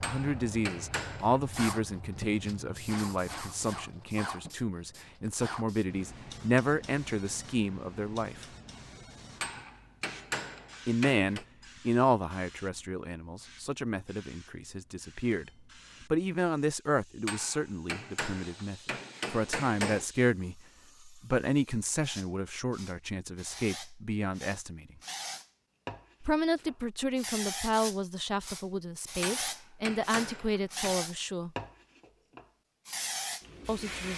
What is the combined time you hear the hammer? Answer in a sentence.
You can hear the hammer for 8 seconds altogether.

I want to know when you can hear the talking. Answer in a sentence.
The talking can be heard from 0.0 to 8.4 s, from 10.8 to 24.9 s, from 26.2 to 31.5 s and from 33.6 to 34.1 s.